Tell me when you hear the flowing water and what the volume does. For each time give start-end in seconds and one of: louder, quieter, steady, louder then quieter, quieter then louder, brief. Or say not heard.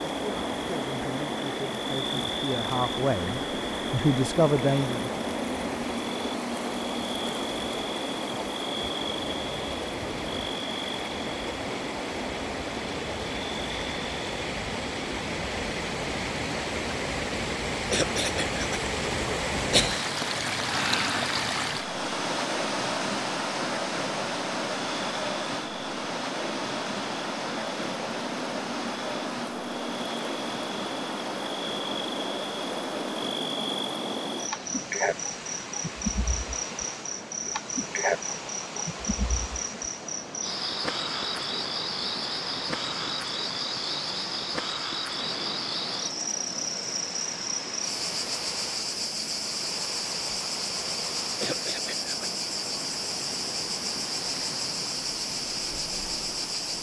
0.0-56.7 louder then quieter.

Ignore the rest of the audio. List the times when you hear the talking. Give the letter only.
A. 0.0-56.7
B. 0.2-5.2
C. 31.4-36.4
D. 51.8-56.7
B.